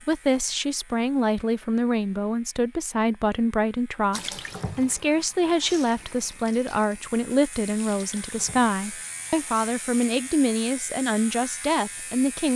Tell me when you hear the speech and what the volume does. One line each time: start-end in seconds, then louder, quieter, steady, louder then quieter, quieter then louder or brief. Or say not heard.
0.1-12.5 steady.